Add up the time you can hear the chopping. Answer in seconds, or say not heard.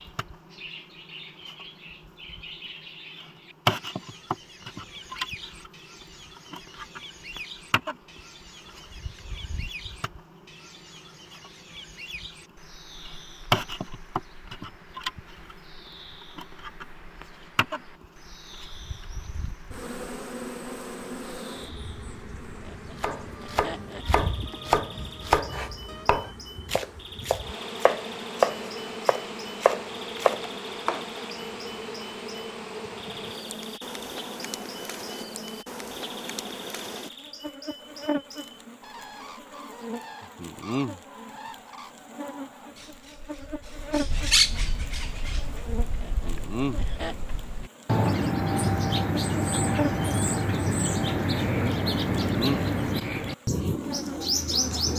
8 s.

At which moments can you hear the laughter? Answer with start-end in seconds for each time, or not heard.
22.6-24.2, 46.0-47.1.